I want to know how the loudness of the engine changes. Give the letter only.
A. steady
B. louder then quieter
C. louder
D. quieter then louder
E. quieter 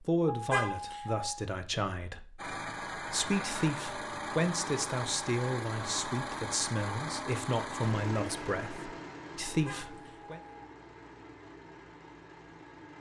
E.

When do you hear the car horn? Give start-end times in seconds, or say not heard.
0.2-1.4, 9.4-10.7.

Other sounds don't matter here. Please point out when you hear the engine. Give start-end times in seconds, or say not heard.
2.4-12.9.